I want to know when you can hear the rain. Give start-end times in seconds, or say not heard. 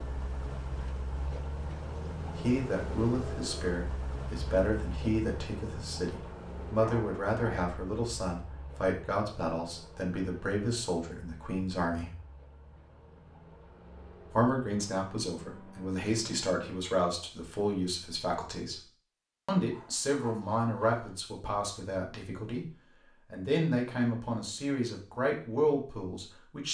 not heard.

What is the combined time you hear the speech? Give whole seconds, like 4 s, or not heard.
21 s.